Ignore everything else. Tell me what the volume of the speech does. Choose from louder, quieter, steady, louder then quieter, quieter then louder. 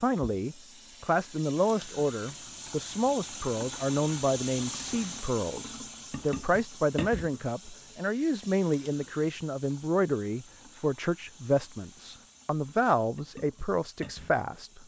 steady.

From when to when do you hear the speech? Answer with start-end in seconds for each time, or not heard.
0.0-14.8.